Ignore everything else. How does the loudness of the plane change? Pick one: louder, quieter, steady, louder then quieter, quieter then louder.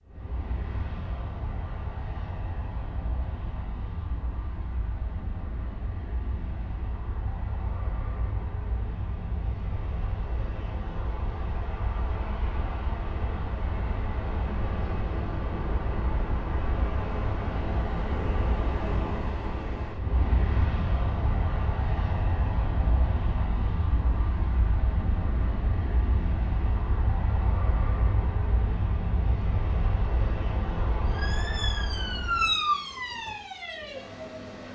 louder.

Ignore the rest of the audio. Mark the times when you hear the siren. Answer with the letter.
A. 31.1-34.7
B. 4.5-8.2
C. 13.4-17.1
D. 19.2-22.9
A.